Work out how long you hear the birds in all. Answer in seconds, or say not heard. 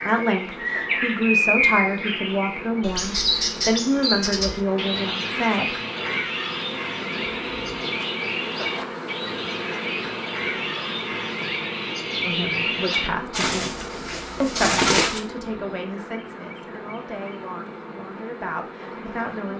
15 s.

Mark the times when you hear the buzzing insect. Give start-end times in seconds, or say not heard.
0.0-19.5.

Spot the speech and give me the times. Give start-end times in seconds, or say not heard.
0.0-5.8, 12.2-19.5.